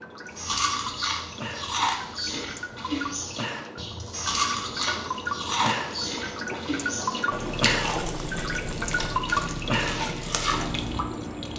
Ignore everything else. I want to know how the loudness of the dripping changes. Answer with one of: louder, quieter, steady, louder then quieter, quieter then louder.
louder.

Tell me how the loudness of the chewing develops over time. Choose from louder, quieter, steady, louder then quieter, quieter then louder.
steady.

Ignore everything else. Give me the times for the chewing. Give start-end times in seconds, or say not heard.
0.3-11.0.